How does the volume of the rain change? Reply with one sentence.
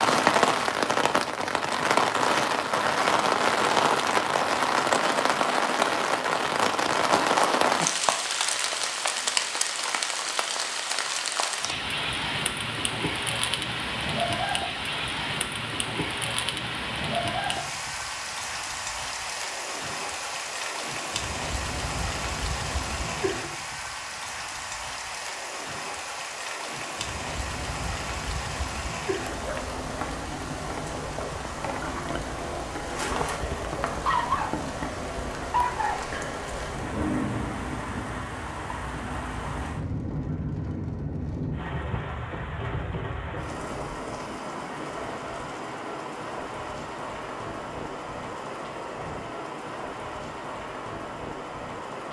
The loudness of the rain goes down.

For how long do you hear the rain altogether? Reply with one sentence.
The rain can be heard for 52 seconds in total.